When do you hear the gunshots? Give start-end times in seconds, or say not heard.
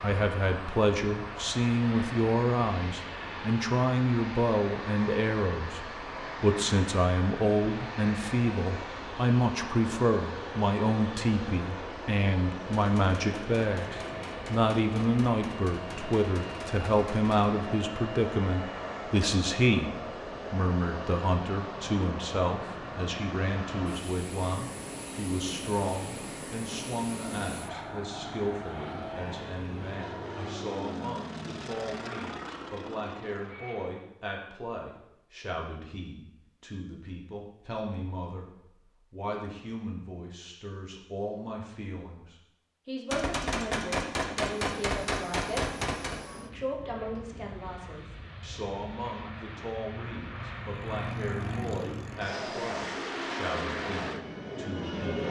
12.7-17.4, 43.1-46.2.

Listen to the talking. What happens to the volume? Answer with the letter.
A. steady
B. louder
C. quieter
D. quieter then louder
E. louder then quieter
C.